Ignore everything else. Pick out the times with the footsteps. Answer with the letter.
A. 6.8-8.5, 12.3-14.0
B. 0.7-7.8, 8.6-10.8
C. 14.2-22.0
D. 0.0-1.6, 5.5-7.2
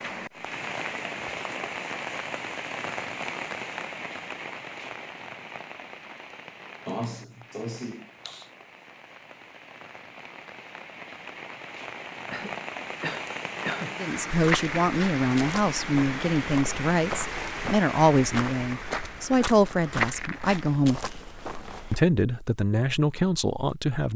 C.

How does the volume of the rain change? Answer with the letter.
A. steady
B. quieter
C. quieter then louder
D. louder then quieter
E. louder
C.